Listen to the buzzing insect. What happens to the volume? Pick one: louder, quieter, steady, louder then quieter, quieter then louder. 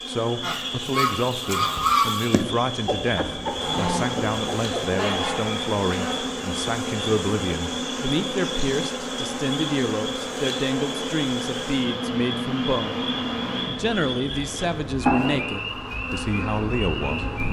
louder.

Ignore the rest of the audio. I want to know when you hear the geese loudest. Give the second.
2 s.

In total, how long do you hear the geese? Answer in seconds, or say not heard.
6 s.